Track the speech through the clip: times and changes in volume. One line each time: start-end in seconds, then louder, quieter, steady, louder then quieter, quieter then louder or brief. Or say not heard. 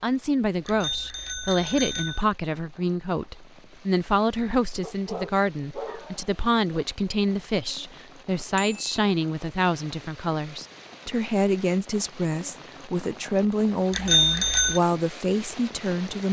0.0-16.2 steady.